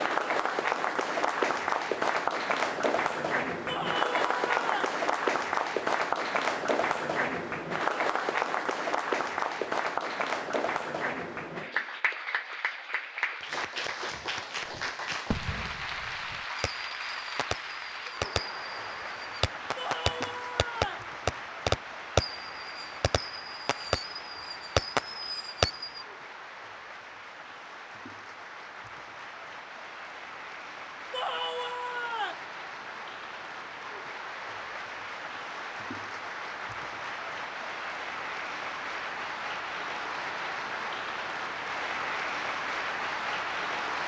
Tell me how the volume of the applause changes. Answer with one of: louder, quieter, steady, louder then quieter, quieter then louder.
quieter then louder.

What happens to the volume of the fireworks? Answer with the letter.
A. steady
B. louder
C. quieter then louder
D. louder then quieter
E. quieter
B.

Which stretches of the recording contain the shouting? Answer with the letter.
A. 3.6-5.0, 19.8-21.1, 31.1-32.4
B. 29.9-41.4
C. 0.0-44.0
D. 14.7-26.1
A.